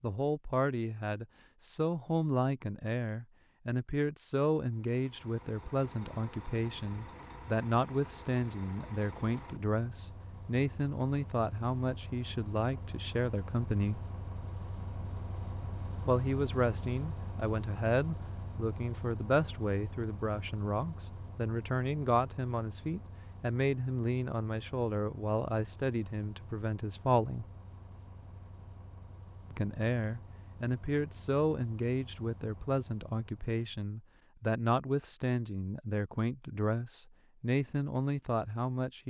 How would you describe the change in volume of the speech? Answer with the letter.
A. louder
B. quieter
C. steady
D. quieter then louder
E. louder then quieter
C.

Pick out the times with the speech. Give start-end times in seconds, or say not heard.
0.0-14.0, 16.1-27.4, 29.5-39.0.